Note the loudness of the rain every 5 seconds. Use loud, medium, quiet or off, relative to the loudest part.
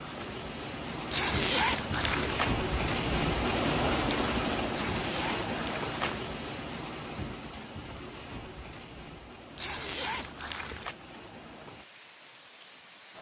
loud, medium, quiet.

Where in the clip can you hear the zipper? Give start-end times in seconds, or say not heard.
1.1-2.5, 4.7-6.2, 9.6-10.9.